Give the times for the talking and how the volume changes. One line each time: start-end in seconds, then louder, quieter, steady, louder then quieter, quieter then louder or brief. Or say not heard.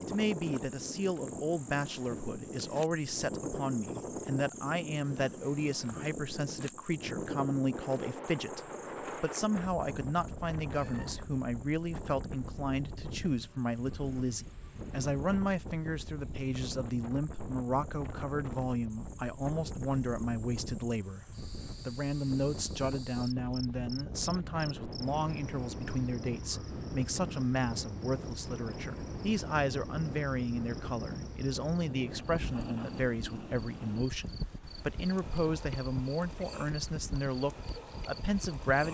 0.0-38.8 steady.